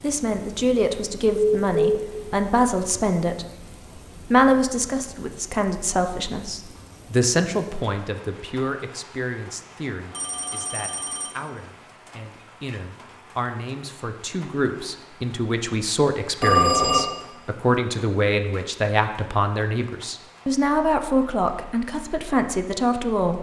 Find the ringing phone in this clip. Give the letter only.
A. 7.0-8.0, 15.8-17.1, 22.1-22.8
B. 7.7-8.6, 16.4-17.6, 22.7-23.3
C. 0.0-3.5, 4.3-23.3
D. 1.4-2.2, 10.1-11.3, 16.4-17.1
D.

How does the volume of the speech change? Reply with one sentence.
The loudness of the speech goes down, then up.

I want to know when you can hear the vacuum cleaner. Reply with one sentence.
The vacuum cleaner can't be heard in this clip.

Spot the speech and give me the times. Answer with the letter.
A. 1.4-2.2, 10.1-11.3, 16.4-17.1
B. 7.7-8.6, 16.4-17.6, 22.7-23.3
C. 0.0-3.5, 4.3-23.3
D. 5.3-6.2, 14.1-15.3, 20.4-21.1
C.